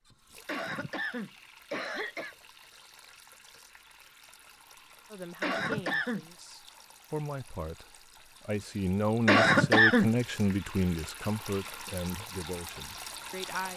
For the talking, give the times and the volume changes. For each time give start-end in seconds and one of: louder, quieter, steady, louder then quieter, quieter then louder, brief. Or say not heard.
5.1-13.7 louder then quieter.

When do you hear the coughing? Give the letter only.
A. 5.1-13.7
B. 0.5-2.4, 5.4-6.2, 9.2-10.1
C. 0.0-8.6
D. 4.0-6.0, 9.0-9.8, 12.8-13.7
B.